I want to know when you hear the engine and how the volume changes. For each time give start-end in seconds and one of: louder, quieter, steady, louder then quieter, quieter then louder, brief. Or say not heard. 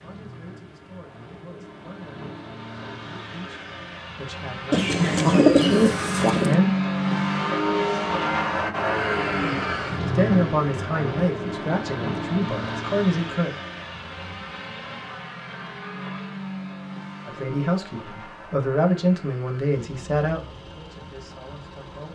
0.0-22.1 louder then quieter.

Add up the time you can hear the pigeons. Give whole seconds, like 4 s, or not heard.
2 s.